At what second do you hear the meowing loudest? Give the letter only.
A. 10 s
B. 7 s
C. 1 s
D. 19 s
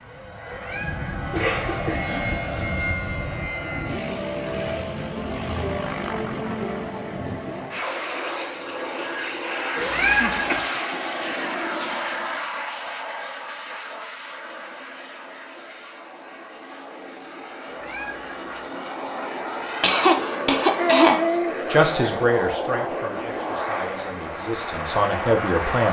A.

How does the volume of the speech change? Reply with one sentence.
The loudness of the speech goes down, then up.